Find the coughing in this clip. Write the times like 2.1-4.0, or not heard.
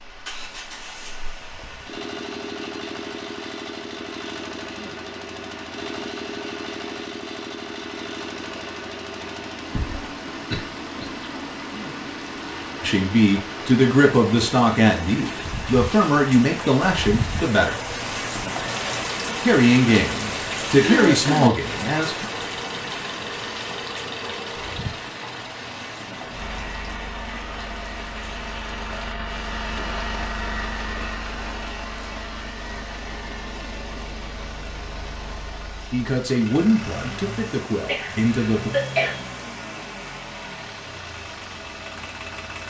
9.8-11.1, 20.8-21.6, 37.8-39.2.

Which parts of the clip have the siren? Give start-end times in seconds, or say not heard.
not heard.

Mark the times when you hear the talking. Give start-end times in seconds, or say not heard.
12.8-17.8, 19.4-22.2, 35.9-38.7.